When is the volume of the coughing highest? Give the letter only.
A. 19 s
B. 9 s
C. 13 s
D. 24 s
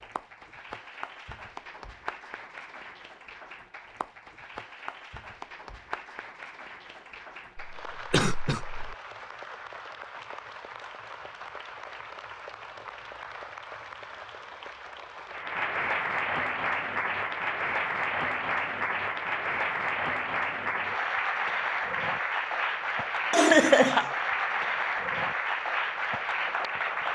D.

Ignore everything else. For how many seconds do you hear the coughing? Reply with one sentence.
You can hear the coughing for 2 seconds altogether.